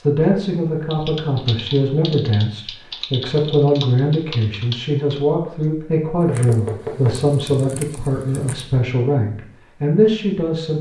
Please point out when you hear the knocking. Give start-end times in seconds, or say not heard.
6.2-7.2.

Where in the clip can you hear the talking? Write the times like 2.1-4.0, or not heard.
0.0-10.7.